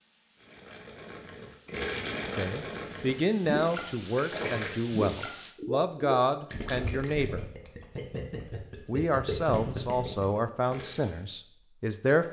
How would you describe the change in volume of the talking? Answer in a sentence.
The loudness of the talking stays about the same.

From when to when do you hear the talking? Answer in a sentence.
You can hear the talking from 2.2 to 7.5 s and from 8.8 to 12.2 s.